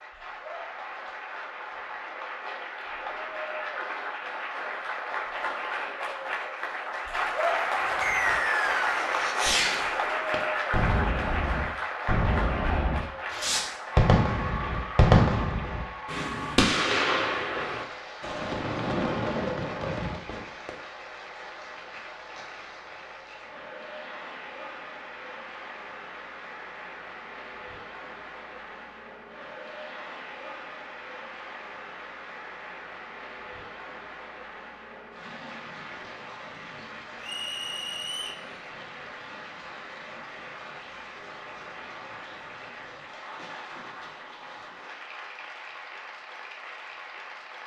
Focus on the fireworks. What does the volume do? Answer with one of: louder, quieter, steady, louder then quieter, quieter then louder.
louder then quieter.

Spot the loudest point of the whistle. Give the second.
8 s.